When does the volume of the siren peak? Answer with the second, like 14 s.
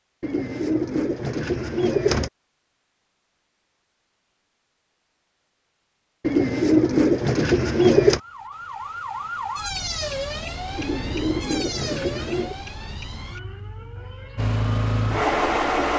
10 s.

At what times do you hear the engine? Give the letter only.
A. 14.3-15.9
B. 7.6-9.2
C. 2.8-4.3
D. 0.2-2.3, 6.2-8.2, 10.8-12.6
A.